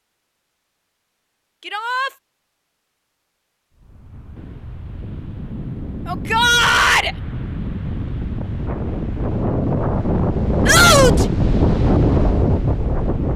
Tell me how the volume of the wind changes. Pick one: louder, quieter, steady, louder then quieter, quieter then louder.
louder.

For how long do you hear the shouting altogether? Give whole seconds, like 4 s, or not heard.
2 s.